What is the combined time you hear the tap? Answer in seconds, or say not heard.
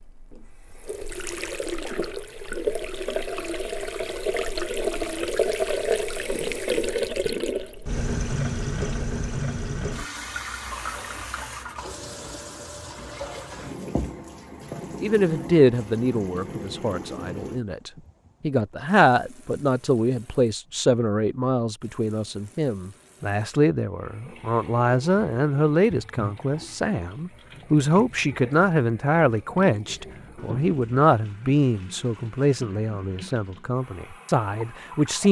35 s.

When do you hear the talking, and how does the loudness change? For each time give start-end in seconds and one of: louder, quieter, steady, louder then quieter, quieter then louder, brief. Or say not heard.
15.0-35.2 steady.